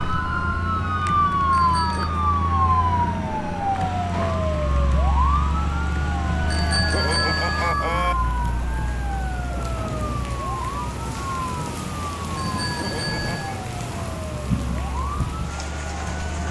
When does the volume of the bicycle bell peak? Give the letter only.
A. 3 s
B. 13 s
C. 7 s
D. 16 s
C.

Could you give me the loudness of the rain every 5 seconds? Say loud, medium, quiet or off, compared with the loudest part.
medium, medium, loud, loud.